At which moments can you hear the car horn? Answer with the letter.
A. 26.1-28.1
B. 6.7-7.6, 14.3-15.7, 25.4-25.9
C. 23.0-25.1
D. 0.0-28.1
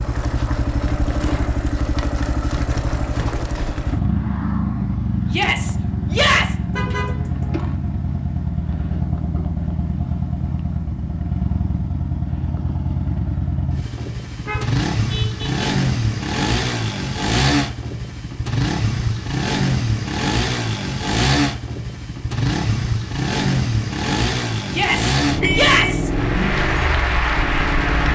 B.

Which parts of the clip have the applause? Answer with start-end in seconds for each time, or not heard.
26.1-28.1.